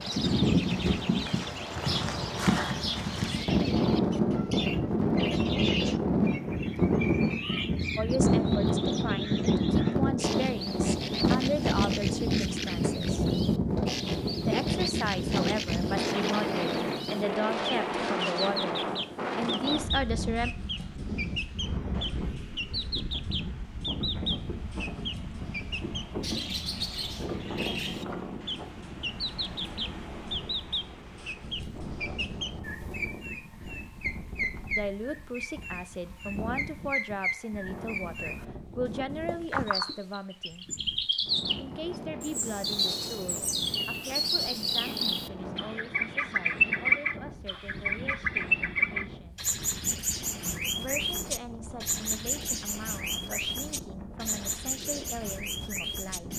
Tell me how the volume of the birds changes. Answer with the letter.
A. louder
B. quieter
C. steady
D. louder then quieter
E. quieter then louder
A.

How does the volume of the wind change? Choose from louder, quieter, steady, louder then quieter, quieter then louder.
quieter.